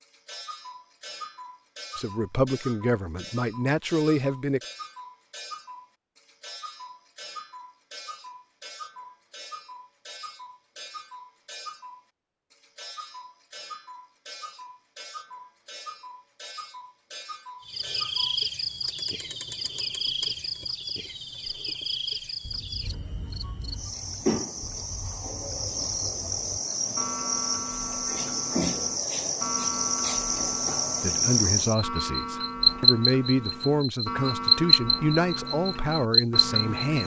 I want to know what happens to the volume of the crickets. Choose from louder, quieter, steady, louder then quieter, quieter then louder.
louder.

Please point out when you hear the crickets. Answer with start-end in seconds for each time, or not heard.
17.6-37.0.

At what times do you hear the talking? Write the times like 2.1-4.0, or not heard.
1.9-4.6, 31.0-37.0.